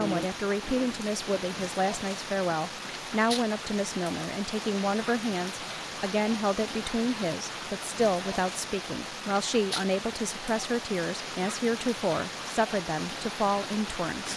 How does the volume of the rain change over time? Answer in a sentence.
The loudness of the rain stays about the same.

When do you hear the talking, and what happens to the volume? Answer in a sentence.
The talking can be heard from 0.0 to 14.3 s, at a steady volume.